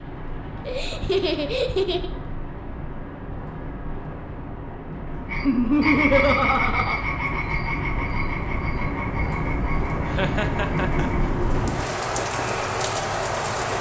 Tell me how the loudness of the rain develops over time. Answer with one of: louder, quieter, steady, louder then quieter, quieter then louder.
louder.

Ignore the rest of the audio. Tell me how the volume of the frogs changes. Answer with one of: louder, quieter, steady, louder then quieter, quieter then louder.
quieter.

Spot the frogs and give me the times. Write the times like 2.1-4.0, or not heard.
5.3-13.7.